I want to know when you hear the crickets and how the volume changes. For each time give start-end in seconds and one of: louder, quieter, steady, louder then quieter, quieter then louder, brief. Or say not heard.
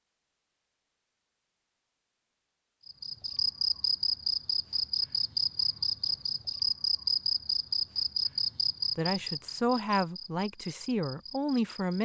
2.9-11.9 quieter.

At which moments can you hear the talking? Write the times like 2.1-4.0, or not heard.
8.9-11.9.